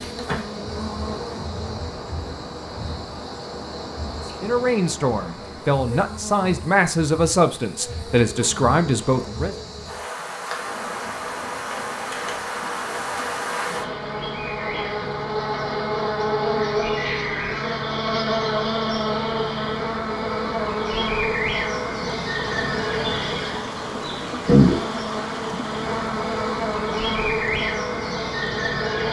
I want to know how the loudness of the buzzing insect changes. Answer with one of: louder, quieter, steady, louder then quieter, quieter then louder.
louder.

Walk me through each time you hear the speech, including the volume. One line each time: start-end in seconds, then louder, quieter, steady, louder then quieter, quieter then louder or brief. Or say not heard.
4.2-9.6 steady.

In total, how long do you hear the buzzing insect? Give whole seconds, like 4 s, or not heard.
29 s.